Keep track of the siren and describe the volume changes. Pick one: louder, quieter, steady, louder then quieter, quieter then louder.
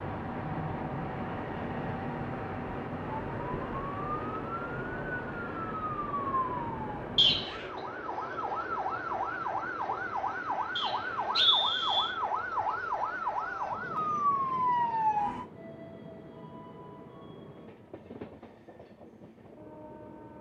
louder.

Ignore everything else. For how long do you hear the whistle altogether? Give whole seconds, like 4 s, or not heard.
2 s.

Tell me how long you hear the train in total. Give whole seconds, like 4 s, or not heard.
20 s.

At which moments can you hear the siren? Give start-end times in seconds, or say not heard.
0.0-15.4.